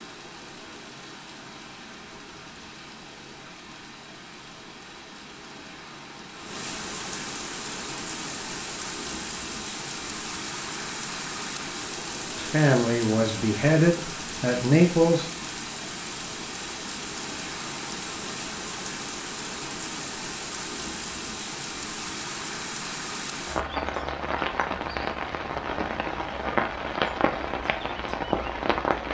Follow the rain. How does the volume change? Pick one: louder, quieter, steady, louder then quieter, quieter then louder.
louder.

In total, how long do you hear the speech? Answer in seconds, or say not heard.
3 s.